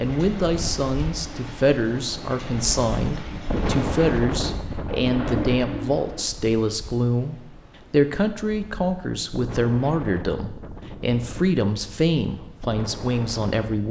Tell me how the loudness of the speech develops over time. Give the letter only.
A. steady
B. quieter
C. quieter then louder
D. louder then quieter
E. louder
A.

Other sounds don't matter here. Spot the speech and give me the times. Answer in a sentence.
You can hear the speech from 0.0 to 13.8 s.